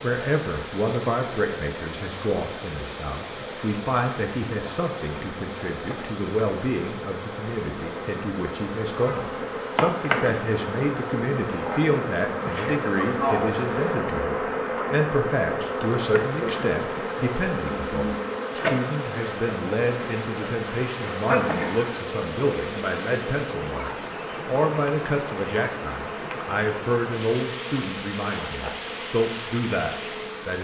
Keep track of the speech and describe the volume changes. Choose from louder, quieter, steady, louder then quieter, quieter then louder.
steady.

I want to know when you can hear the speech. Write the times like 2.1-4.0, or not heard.
0.0-30.5.